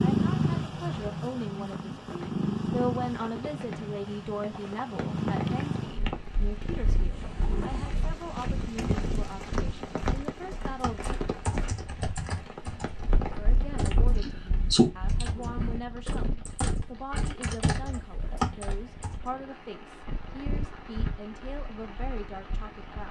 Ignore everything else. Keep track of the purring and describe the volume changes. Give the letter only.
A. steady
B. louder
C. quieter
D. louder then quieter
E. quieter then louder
C.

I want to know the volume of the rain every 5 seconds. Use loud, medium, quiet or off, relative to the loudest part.
medium, loud, loud, medium, medium.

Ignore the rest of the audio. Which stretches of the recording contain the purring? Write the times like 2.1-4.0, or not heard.
0.0-23.0.